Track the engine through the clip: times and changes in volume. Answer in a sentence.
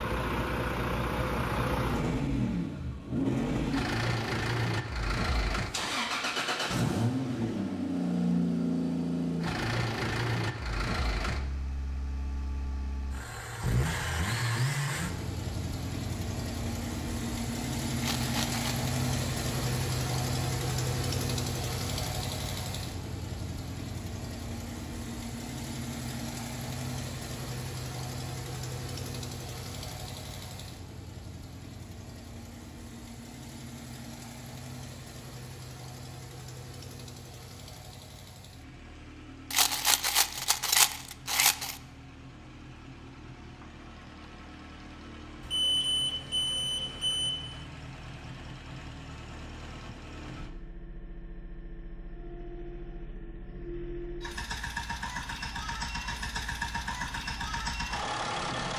The engine can be heard from 0.0 to 58.7 s, getting quieter then louder.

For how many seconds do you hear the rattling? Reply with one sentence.
The rattling can be heard for 3 seconds in total.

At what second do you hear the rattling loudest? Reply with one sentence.
The loudest moment of the rattling is at 41 seconds.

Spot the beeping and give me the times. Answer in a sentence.
You can hear the beeping from 45.4 to 47.3 s.